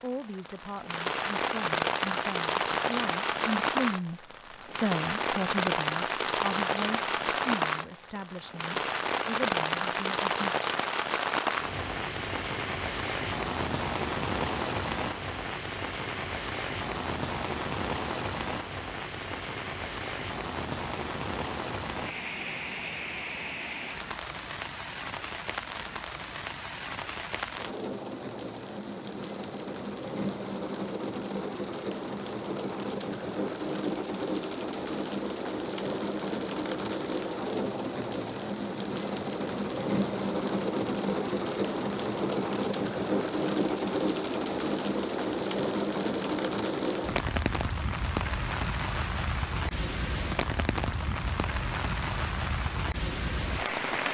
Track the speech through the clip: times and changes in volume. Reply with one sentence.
You can hear the speech from 0.0 to 10.4 s, getting louder then quieter.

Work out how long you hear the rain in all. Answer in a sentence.
You can hear the rain for 54 seconds altogether.